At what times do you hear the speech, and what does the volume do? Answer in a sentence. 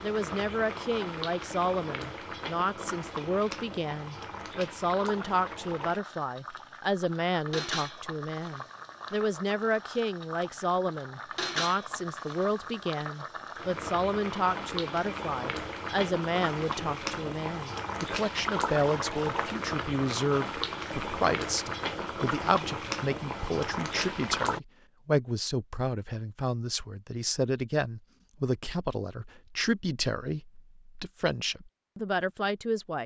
You can hear the speech from 0.0 to 33.0 s, at a steady volume.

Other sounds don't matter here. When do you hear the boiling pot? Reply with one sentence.
You can hear the boiling pot from 0.0 to 24.6 s.